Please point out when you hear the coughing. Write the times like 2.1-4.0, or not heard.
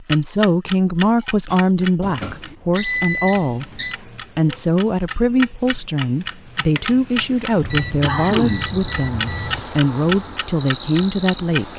1.1-2.6, 8.0-8.8.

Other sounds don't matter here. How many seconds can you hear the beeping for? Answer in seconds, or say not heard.
4 s.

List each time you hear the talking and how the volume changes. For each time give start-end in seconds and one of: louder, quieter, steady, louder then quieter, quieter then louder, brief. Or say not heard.
0.0-11.7 steady.